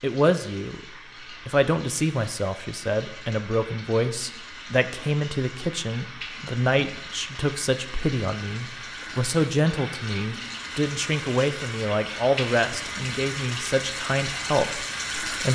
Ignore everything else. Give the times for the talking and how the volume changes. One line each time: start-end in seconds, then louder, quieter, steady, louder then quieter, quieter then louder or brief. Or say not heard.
0.0-0.8 brief
1.4-15.4 steady.